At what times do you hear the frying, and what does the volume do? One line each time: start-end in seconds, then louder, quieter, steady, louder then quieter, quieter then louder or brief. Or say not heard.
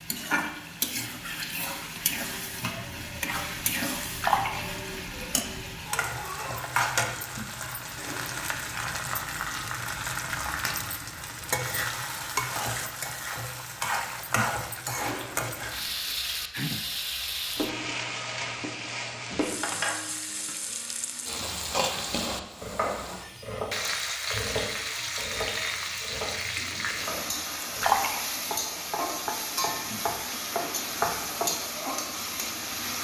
0.0-32.9 steady.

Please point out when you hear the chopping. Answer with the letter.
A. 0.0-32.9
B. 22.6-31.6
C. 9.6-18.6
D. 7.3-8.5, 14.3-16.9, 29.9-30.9
B.